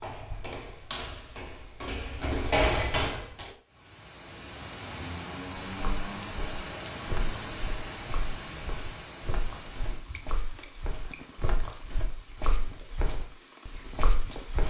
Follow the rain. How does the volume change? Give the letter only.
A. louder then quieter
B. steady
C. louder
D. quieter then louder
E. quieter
E.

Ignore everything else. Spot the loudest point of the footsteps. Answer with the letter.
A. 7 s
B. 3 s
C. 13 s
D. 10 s
B.